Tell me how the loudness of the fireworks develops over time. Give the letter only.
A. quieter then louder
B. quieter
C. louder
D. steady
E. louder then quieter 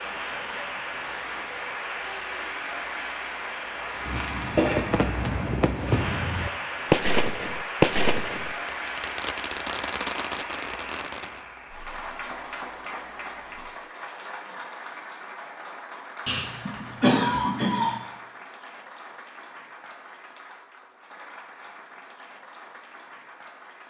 E.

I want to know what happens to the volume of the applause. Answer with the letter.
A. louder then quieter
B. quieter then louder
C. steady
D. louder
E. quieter
E.